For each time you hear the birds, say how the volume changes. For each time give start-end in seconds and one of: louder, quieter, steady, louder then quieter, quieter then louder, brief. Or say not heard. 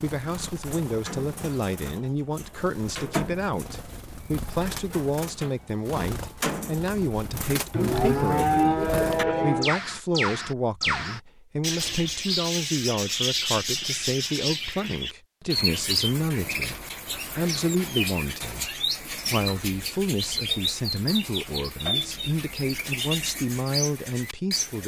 0.0-24.8 louder.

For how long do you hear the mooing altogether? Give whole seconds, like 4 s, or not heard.
2 s.